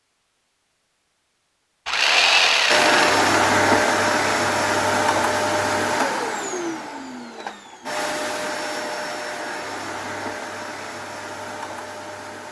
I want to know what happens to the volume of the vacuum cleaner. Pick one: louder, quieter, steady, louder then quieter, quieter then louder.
quieter.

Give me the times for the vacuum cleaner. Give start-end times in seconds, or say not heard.
2.6-12.4.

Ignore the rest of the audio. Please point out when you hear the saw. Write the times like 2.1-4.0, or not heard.
1.9-3.2.